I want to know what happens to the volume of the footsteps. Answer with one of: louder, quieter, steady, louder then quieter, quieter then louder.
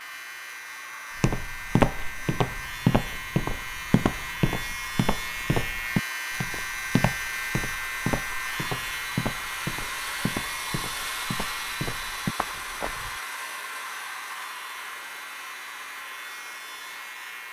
quieter.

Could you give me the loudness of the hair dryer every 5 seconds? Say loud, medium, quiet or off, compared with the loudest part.
medium, loud, loud, medium.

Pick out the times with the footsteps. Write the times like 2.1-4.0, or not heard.
1.1-13.2.